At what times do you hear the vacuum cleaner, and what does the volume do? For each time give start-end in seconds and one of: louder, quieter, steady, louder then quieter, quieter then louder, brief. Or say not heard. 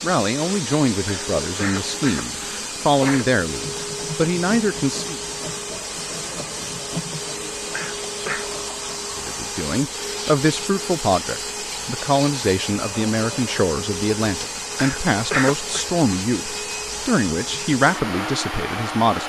0.0-19.2 steady.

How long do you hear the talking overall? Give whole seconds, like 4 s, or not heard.
15 s.